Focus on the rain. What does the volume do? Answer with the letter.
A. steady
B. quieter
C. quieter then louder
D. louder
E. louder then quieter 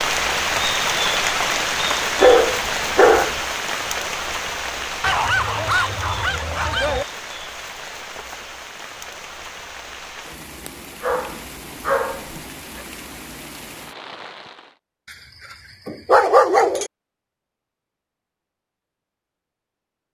B.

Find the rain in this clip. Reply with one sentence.
The rain can be heard from 0.0 to 14.8 s.